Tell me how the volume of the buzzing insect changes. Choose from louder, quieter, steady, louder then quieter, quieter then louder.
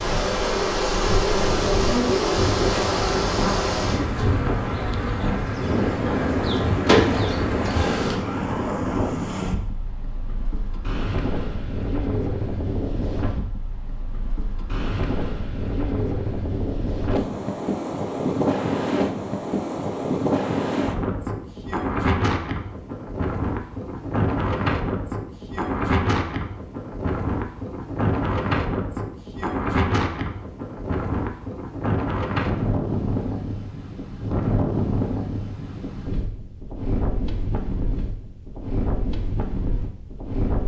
quieter then louder.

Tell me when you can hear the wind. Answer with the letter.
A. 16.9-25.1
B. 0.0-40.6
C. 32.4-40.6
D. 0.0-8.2
B.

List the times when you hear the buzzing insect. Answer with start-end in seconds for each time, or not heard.
0.0-8.2.